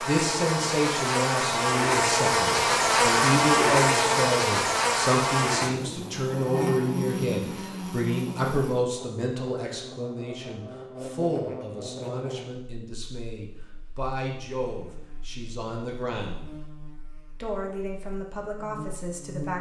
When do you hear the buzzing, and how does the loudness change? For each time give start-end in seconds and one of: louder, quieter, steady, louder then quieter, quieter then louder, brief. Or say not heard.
0.0-19.5 quieter.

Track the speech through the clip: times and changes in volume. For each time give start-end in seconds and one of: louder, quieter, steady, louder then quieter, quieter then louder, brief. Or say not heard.
0.0-16.6 quieter
17.4-19.5 brief.